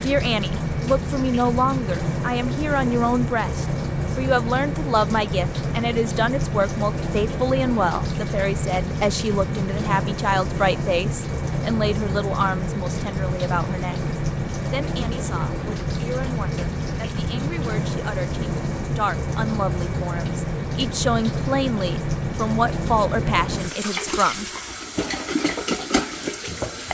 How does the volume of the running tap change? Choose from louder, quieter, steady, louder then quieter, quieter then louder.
steady.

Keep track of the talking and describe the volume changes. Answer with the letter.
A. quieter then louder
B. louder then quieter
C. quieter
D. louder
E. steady
A.